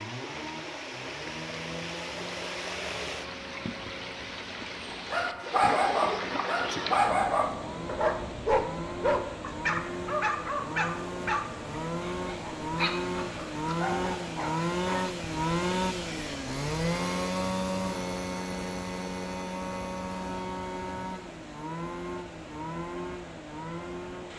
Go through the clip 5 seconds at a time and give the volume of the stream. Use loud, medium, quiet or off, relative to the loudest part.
loud, loud, medium, medium, medium.